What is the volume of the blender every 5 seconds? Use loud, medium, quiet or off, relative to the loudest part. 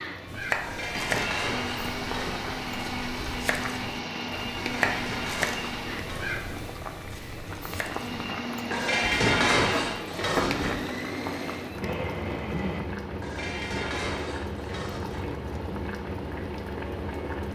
loud, loud, loud, off.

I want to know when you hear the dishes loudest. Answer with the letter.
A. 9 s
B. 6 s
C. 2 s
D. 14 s
A.